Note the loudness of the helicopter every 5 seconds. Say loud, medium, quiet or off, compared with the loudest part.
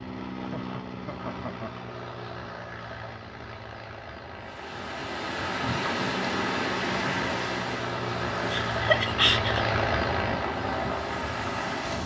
medium, loud, loud.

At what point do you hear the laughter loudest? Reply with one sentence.
The loudest moment of the laughter is at 9 seconds.